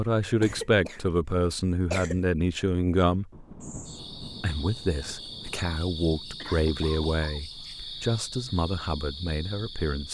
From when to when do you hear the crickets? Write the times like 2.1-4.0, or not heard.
3.6-10.0.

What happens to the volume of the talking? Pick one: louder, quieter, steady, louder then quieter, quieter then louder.
quieter.